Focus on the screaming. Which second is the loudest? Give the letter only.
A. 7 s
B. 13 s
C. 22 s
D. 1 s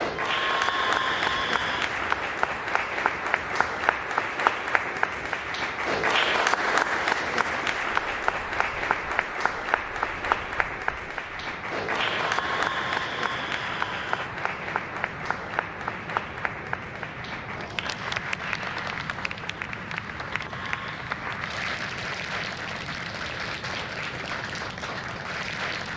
D.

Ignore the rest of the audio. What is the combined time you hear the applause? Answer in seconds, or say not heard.
26 s.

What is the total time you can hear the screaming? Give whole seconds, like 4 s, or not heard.
4 s.